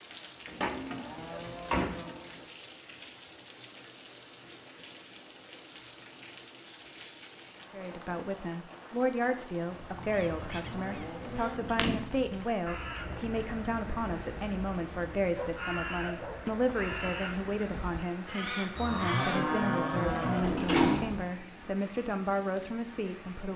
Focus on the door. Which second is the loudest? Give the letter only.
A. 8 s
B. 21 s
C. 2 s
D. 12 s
B.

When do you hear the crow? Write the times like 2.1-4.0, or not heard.
9.7-19.6.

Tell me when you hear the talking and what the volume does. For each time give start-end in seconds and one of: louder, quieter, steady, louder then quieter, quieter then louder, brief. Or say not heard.
7.7-23.5 steady.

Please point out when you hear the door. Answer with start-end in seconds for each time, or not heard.
0.6-2.0, 10.9-12.2, 20.4-21.2.